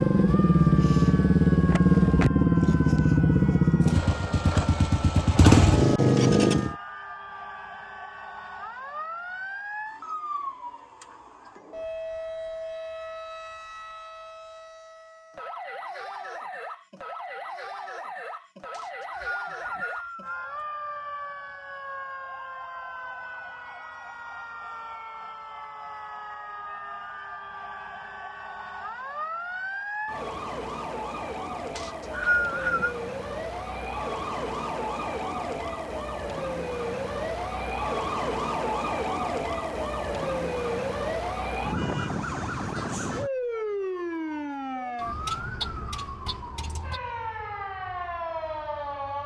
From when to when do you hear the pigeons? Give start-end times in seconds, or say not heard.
not heard.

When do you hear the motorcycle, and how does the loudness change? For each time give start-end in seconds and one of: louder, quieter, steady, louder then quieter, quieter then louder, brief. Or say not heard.
0.0-6.8 quieter then louder.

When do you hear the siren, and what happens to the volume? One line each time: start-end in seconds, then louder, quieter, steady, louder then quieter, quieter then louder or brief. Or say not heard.
0.0-49.2 louder.